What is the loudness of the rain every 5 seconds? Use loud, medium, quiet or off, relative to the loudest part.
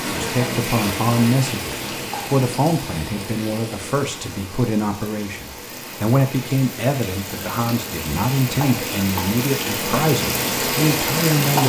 medium, medium, loud.